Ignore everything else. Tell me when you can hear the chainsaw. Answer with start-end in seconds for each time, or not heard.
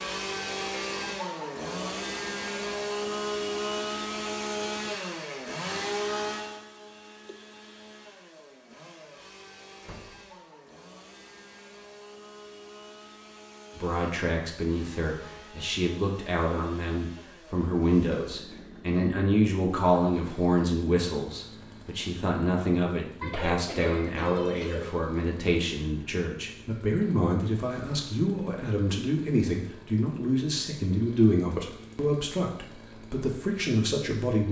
0.0-34.4.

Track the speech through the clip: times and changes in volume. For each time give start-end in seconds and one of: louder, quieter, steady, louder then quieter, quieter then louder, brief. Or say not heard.
13.8-34.4 steady.